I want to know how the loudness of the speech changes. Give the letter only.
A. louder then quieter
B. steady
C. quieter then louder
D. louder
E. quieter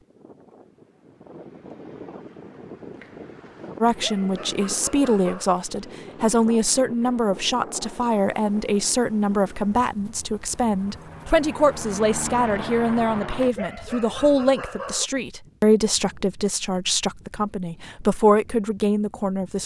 B.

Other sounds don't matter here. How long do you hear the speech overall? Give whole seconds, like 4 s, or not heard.
16 s.